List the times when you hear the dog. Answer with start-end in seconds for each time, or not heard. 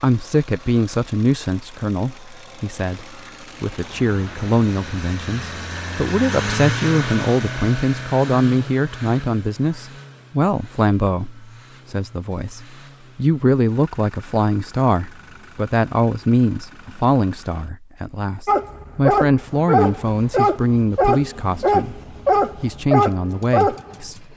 18.4-23.9.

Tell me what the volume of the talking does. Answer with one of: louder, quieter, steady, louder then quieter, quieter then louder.
steady.